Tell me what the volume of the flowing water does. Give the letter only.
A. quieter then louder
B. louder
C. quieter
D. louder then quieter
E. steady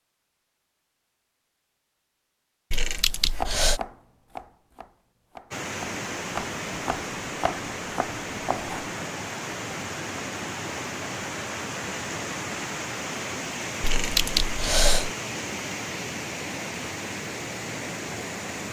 E.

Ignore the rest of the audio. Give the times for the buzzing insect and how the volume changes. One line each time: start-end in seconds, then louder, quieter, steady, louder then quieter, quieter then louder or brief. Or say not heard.
not heard.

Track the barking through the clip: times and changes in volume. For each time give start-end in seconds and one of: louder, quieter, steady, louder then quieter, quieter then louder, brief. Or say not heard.
not heard.